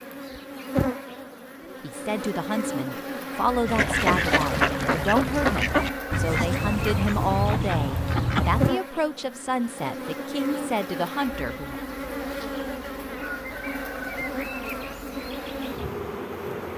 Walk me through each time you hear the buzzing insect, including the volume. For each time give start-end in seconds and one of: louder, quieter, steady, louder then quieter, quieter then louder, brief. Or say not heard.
0.0-16.7 steady.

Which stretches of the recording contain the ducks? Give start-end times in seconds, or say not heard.
3.6-8.7.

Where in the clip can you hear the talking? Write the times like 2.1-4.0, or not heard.
1.6-11.8.